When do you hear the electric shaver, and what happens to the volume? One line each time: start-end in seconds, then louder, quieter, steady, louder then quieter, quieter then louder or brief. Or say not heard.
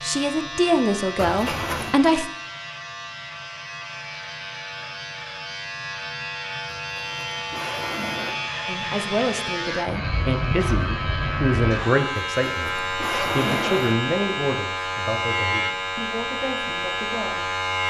0.0-17.8 louder.